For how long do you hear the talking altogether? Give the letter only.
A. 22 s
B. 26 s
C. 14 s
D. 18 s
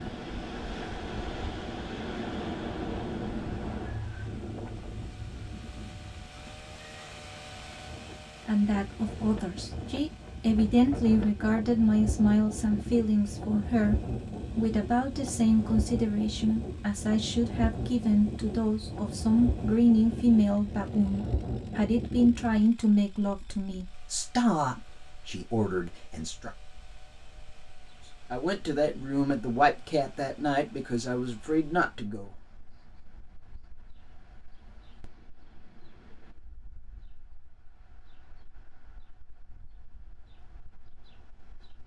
A.